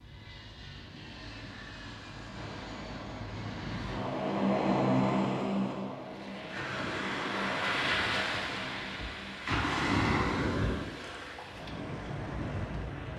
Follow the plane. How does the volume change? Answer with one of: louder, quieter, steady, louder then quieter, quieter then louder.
louder then quieter.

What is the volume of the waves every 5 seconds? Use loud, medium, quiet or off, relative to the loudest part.
quiet, loud, loud.